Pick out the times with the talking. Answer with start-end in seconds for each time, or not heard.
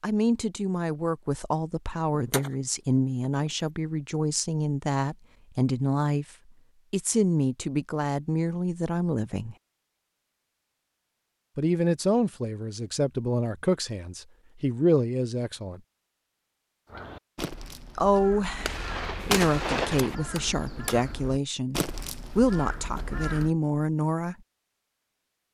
0.0-6.2, 6.9-9.6, 11.6-15.8, 17.9-24.4.